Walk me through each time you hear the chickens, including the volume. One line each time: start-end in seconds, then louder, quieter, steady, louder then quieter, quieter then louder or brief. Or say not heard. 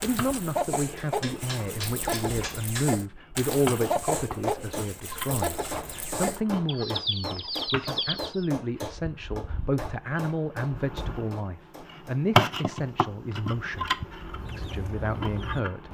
0.0-8.5 steady
14.2-15.8 brief.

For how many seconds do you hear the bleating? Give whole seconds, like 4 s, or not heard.
not heard.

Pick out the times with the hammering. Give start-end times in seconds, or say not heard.
0.9-12.2.